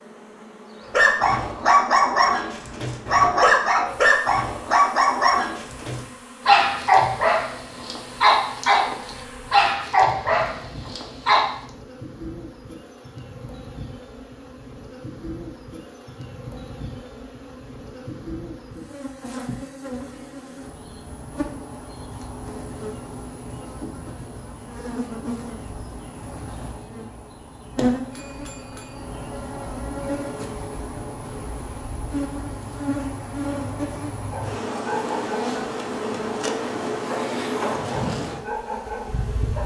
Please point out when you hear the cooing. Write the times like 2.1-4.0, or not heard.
not heard.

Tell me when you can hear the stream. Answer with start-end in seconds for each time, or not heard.
not heard.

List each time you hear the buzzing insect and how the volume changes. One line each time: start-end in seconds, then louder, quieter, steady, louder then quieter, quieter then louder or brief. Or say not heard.
0.0-39.6 louder.